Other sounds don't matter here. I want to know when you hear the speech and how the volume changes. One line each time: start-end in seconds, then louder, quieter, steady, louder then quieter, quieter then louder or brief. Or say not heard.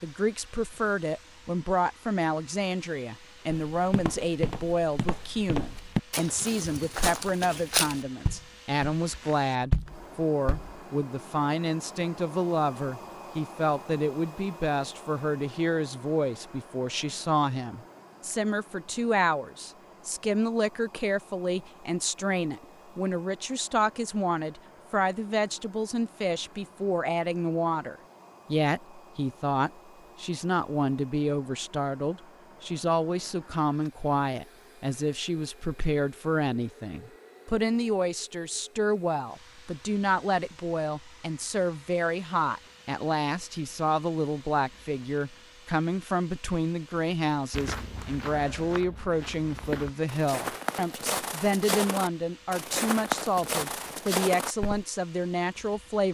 0.0-56.0 steady.